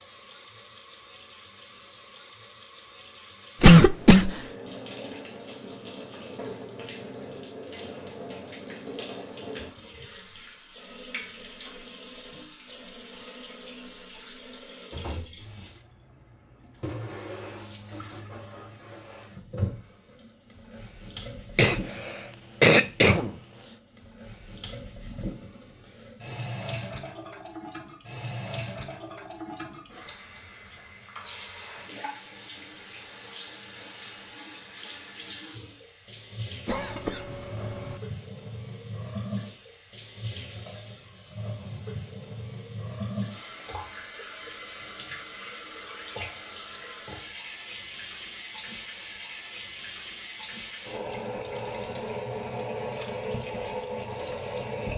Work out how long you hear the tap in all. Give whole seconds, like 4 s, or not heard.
55 s.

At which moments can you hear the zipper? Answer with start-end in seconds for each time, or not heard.
not heard.